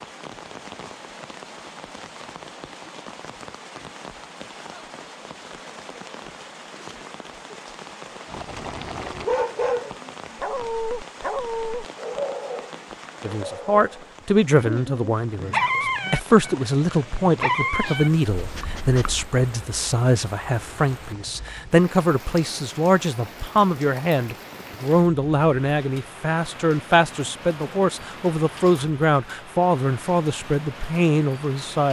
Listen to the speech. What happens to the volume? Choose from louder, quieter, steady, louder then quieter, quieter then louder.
steady.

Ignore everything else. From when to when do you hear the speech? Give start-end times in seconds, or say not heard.
13.2-31.8.